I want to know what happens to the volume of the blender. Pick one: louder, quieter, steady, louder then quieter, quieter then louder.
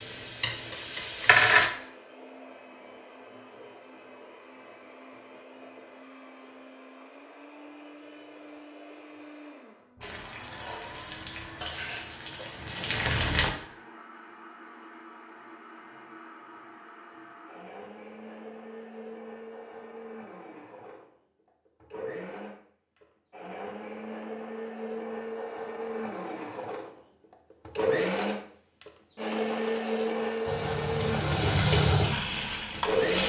louder.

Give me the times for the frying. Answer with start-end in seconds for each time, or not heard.
0.0-1.7, 10.0-13.5, 30.4-33.2.